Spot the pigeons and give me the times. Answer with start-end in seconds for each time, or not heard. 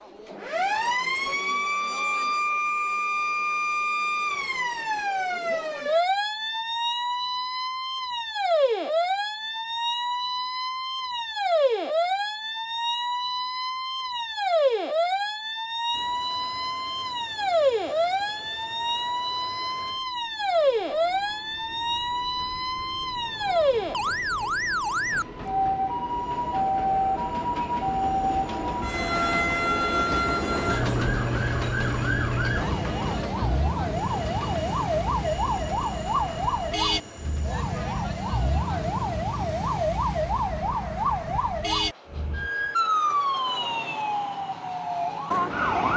not heard.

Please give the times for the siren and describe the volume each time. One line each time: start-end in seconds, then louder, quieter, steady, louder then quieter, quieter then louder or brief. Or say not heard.
0.0-45.9 steady.